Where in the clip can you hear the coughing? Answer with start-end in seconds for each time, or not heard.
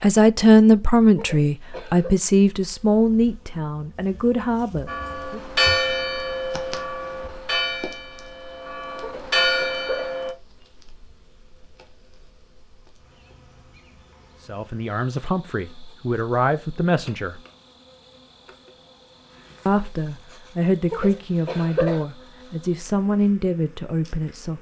1.1-2.1, 9.0-10.2, 20.9-22.0.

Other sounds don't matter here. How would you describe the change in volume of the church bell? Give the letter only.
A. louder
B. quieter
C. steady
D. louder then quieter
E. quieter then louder
E.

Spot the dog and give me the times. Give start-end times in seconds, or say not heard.
not heard.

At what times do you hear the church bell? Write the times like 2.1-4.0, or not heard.
4.8-10.3.